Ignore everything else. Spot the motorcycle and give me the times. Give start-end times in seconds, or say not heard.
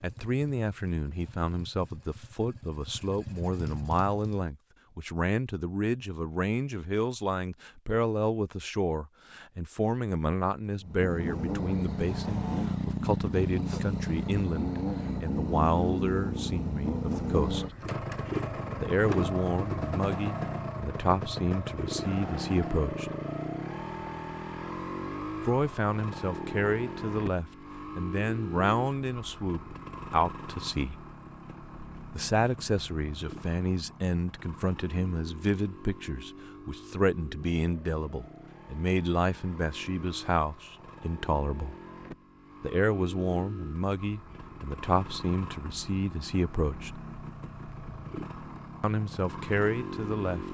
0.0-4.5, 10.8-50.4.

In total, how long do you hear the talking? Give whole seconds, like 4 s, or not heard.
43 s.